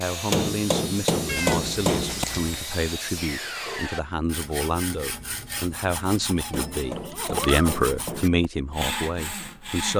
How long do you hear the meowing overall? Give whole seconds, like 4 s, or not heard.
3 s.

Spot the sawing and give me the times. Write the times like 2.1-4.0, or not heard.
0.0-9.9.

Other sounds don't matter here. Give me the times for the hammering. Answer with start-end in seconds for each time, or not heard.
0.3-2.2, 6.5-8.4.